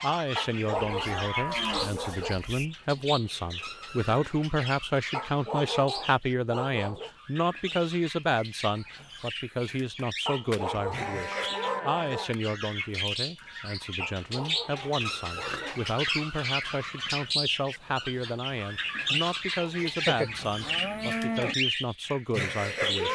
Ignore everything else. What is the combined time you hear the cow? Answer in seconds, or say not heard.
5 s.